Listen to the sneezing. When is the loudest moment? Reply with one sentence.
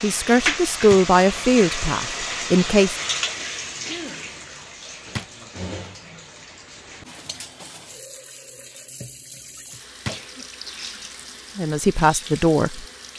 The loudest moment of the sneezing is at 4 seconds.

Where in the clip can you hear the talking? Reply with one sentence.
The talking can be heard from 0.0 to 3.0 s and from 11.6 to 12.8 s.